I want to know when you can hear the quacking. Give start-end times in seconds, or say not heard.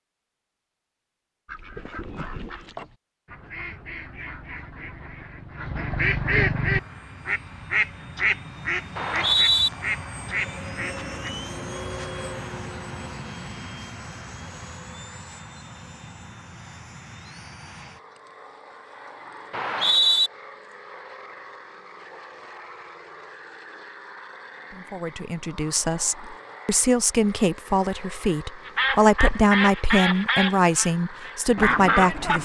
1.4-11.3, 28.6-32.4.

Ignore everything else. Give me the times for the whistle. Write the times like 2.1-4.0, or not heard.
8.9-9.7, 19.5-20.3.